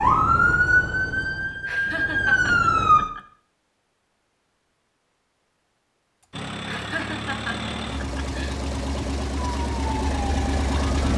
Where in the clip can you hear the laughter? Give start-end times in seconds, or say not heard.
1.6-3.2, 6.7-8.6.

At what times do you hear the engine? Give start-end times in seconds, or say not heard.
6.3-11.1.